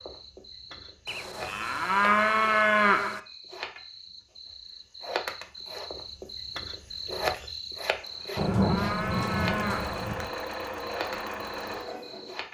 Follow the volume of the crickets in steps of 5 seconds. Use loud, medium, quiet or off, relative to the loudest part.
medium, loud, medium.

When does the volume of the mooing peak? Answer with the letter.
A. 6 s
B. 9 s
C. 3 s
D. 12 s
C.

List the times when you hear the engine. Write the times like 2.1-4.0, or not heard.
8.9-12.4.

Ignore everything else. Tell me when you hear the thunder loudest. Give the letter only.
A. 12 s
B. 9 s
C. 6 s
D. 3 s
B.